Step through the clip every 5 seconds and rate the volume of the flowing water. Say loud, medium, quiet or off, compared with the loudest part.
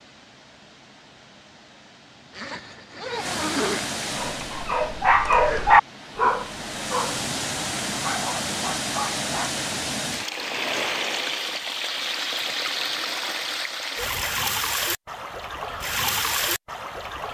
medium, loud, loud, loud.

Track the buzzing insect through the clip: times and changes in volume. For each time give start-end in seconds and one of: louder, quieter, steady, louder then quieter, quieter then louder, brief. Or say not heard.
not heard.